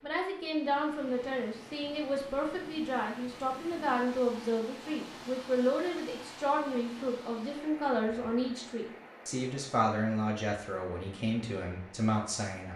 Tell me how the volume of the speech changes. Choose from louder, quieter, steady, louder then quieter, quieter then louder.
steady.